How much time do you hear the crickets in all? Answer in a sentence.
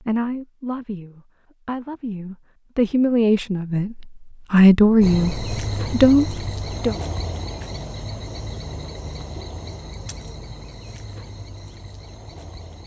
You can hear the crickets for 8 seconds altogether.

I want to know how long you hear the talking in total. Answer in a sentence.
The talking can be heard for 7 seconds in total.